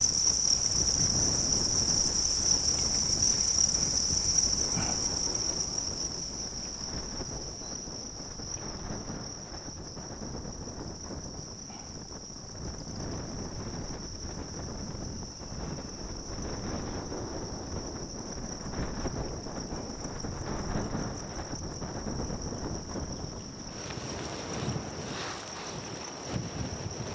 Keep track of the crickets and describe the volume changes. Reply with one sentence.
The loudness of the crickets goes down.